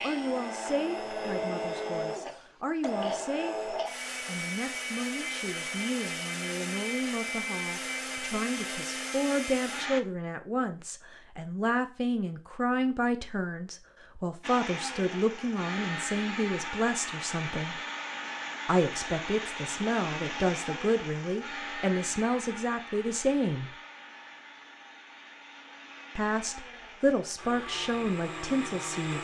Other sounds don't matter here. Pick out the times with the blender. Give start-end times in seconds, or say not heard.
0.0-10.0, 14.4-29.1.